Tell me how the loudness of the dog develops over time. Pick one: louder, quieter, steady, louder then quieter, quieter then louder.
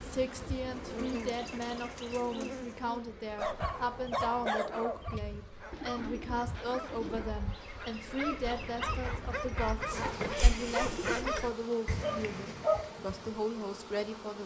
quieter then louder.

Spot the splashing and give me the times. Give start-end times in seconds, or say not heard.
not heard.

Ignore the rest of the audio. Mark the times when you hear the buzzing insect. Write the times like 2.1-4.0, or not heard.
0.0-14.4.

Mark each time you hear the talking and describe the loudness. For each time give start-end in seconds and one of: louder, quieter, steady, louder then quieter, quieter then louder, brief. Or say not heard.
0.0-14.4 steady.